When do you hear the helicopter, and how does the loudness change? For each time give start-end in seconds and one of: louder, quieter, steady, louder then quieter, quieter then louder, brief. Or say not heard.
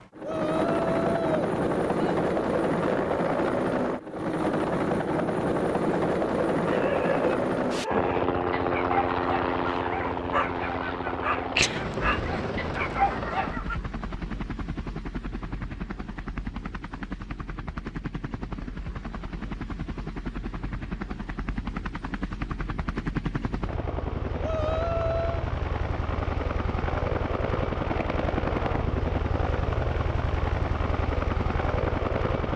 0.0-32.5 quieter then louder.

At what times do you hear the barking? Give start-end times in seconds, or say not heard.
6.7-13.8.